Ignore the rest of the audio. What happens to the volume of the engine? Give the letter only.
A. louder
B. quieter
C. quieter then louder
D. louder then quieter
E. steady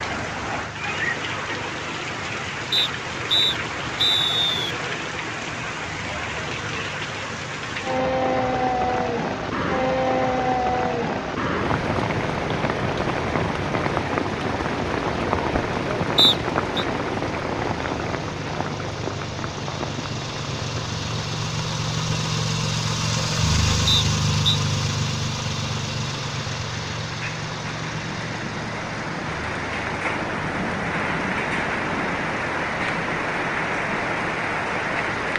D.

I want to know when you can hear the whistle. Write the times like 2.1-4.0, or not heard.
2.7-4.8, 16.1-16.9, 23.9-24.6.